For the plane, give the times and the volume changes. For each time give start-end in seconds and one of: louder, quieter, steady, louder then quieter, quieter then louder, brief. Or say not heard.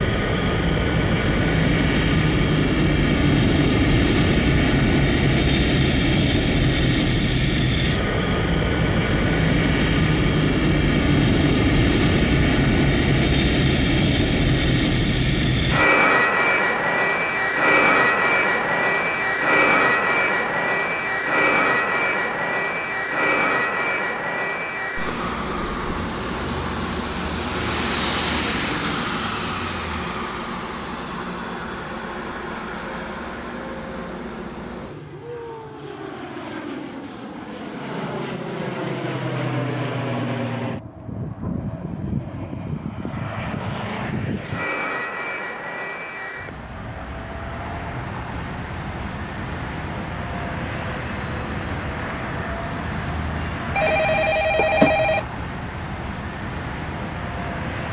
0.0-57.8 quieter.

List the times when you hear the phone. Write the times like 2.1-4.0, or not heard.
53.8-55.2.